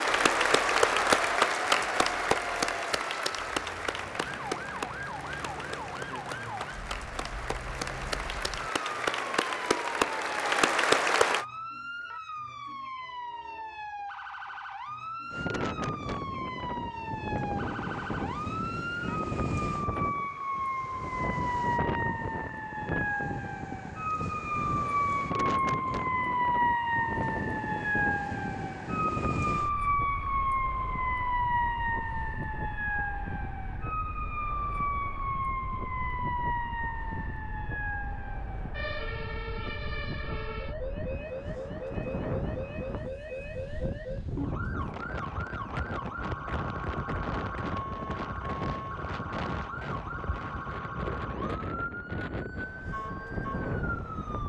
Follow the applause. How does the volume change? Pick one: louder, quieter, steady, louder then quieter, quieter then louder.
quieter then louder.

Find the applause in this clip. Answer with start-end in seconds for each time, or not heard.
0.0-11.4.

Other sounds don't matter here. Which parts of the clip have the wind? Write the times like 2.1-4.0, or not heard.
15.3-54.4.